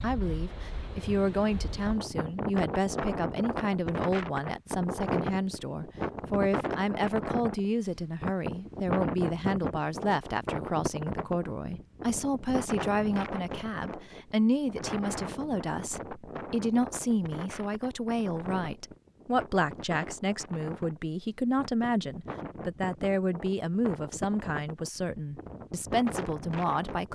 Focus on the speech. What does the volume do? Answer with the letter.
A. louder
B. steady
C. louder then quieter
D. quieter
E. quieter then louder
B.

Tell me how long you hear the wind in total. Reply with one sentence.
The wind can be heard for 27 seconds in total.